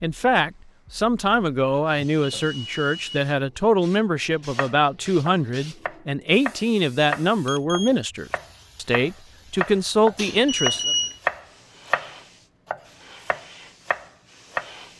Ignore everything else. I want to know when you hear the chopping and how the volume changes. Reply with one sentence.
The chopping can be heard from 4.5 to 14.7 s, getting louder then quieter.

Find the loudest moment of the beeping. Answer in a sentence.
The loudest moment of the beeping is at 11 seconds.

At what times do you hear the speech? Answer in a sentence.
You can hear the speech from 0.0 to 10.9 s.